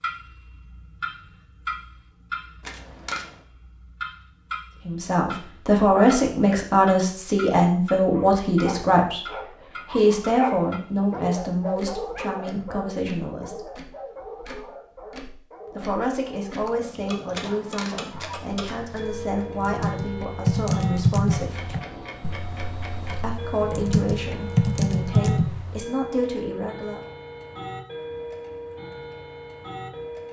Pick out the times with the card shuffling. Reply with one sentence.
The card shuffling can be heard from 2.6 to 3.5 s and from 17.3 to 19.1 s.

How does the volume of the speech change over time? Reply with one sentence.
The volume of the speech goes down.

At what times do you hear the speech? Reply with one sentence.
The speech can be heard from 4.8 to 13.7 s, from 15.7 to 21.7 s and from 23.2 to 27.1 s.